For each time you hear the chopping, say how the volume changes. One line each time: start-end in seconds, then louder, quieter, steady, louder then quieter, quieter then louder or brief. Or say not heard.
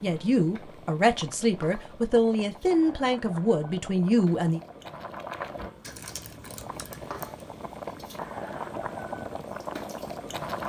not heard.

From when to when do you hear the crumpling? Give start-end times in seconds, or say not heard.
5.8-7.4.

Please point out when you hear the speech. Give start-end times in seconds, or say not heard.
0.0-4.6.